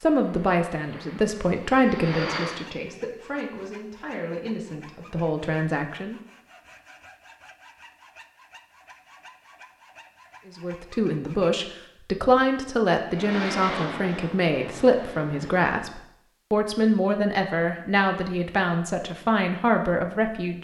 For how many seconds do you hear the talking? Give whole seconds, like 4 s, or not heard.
16 s.